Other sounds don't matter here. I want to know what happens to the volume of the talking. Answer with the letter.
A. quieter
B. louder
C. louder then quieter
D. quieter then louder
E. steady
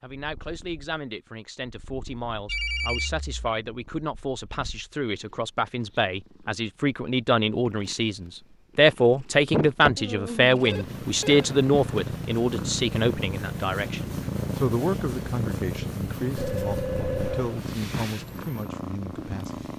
C.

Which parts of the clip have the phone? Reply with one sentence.
You can hear the phone from 2.5 to 3.3 s, from 10.6 to 11.5 s and from 16.4 to 17.6 s.